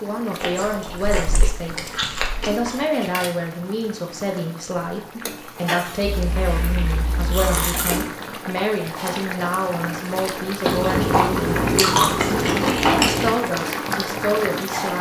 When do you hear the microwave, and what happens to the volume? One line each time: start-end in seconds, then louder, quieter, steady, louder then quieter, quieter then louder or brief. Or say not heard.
not heard.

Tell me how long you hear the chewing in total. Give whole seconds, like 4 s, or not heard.
7 s.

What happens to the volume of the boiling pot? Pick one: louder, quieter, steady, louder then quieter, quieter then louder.
louder.